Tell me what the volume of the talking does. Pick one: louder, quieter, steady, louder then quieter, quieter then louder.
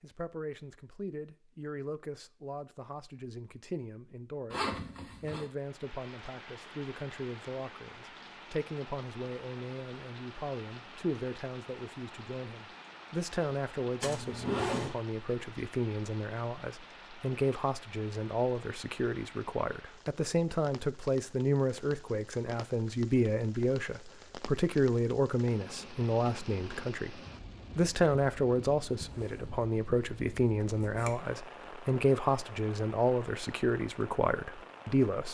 louder.